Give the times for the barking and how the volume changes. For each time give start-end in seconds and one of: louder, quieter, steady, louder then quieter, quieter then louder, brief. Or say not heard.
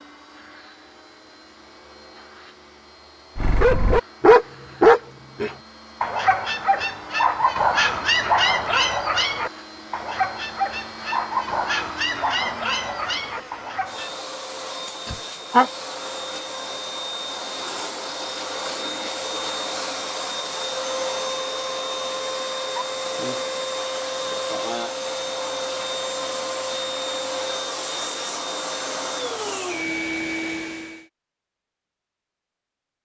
3.4-14.2 quieter.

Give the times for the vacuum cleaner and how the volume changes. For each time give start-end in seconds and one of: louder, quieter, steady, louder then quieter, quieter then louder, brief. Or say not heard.
0.0-31.1 louder.